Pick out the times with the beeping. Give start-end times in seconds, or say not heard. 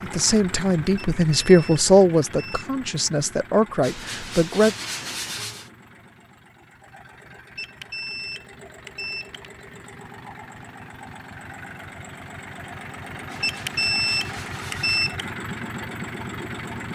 0.9-2.7, 7.5-9.2, 13.4-15.2.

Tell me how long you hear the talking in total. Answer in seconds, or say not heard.
5 s.